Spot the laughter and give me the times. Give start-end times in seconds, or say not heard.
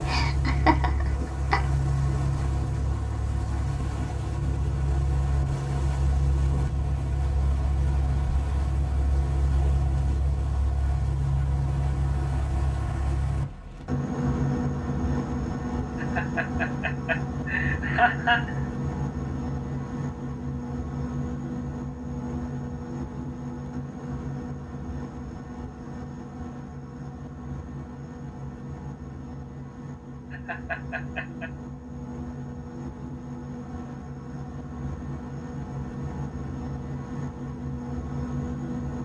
0.1-1.6, 15.9-18.6, 30.3-31.5.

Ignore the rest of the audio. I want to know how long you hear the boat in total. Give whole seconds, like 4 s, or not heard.
39 s.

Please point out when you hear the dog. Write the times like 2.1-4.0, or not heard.
not heard.